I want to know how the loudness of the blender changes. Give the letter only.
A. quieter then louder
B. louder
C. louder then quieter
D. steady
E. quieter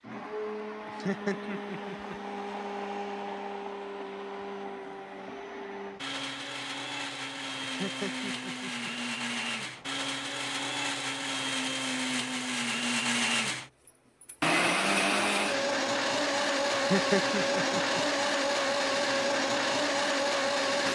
B.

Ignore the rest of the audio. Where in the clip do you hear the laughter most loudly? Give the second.
17 s.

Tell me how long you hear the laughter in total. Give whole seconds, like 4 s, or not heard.
4 s.